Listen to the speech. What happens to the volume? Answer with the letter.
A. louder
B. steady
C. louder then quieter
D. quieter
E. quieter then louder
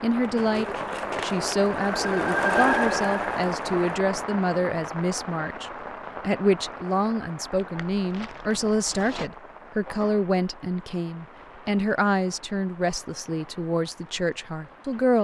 B.